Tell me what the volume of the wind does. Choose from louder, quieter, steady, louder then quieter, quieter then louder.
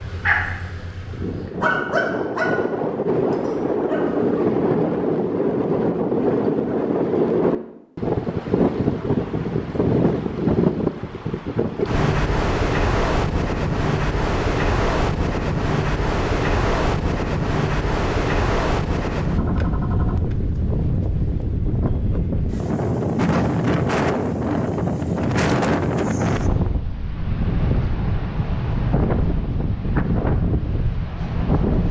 steady.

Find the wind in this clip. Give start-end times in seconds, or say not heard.
0.0-31.8.